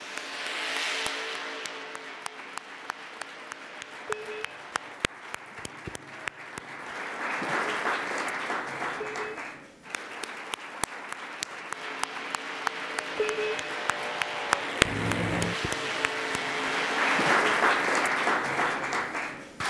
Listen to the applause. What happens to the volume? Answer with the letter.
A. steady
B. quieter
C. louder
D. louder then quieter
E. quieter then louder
C.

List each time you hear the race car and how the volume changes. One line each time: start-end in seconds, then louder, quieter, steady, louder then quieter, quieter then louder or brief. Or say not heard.
0.0-5.0 quieter
11.7-17.4 louder.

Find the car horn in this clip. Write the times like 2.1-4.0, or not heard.
4.0-4.7, 9.1-9.6, 13.2-13.8.